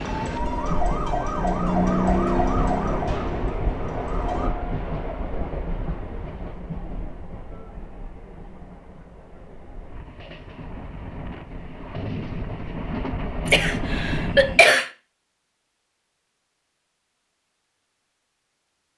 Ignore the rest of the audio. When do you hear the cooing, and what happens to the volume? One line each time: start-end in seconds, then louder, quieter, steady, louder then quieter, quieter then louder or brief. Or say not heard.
not heard.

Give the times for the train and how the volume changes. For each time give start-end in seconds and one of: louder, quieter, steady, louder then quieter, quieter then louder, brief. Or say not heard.
0.0-14.7 quieter then louder.